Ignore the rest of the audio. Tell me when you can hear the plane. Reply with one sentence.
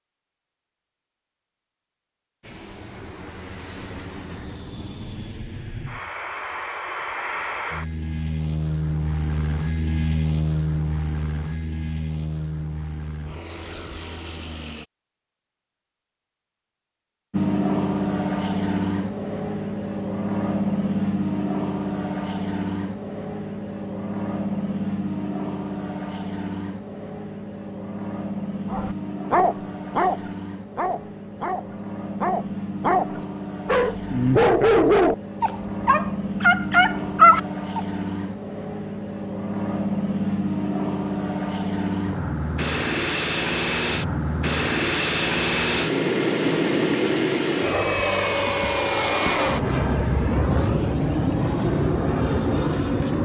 The plane can be heard from 2.4 to 14.8 s and from 17.3 to 53.2 s.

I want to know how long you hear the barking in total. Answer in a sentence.
The barking can be heard for 9 seconds in total.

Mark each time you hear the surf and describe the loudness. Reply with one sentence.
You can't hear the surf here.